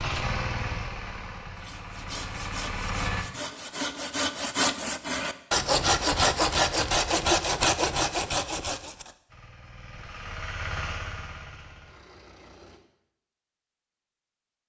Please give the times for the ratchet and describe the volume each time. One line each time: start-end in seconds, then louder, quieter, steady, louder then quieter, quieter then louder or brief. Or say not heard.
not heard.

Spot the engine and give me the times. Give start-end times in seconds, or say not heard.
0.0-3.2, 9.2-12.8.